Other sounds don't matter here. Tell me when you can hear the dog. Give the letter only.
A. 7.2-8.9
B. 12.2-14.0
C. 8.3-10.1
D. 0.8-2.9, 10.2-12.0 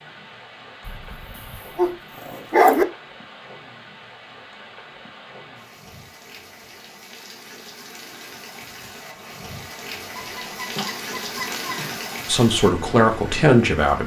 D.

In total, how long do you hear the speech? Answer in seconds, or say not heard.
2 s.